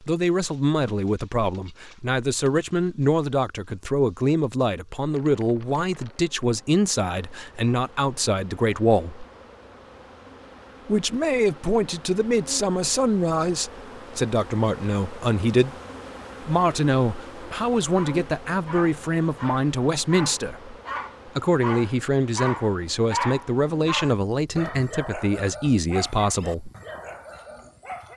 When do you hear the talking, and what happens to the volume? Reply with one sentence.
The talking can be heard from 0.0 to 9.2 s, at a steady volume; from 10.8 to 15.8 s, at a steady volume; and from 16.4 to 26.7 s, at a steady volume.